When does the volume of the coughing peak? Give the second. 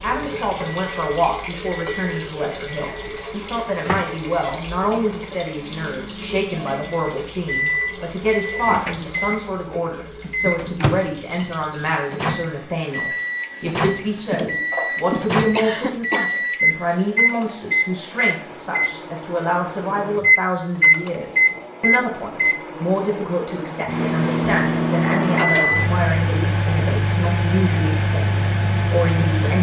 16 s.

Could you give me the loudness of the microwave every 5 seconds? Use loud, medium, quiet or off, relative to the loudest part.
quiet, medium, medium, loud, loud, loud.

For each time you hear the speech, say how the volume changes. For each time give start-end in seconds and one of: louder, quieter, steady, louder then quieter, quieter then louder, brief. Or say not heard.
0.0-29.5 steady.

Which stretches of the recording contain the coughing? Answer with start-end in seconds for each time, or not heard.
14.3-16.3.